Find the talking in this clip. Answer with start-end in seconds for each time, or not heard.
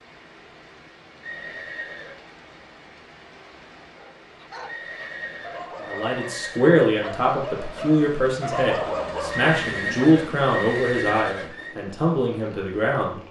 5.8-13.2.